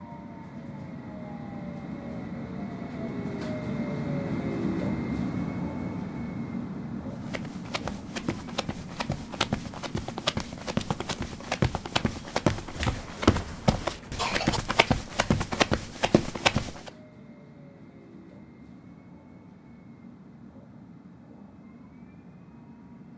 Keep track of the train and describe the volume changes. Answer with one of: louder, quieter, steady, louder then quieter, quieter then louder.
quieter.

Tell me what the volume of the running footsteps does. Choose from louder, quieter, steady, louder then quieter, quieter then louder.
louder.